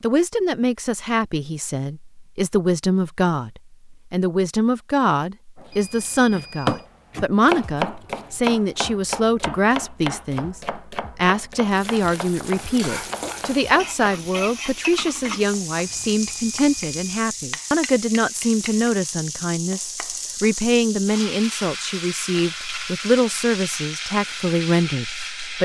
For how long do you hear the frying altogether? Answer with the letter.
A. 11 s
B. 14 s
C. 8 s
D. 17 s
B.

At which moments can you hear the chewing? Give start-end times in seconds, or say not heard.
not heard.